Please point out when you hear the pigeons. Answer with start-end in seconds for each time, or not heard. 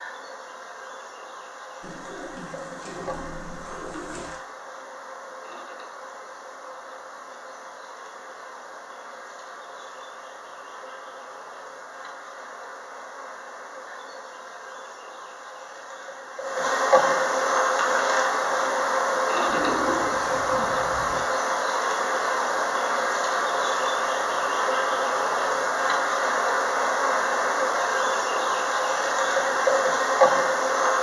1.8-4.4, 19.4-21.2.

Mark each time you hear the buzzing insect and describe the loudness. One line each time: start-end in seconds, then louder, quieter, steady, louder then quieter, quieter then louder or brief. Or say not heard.
0.0-30.9 louder.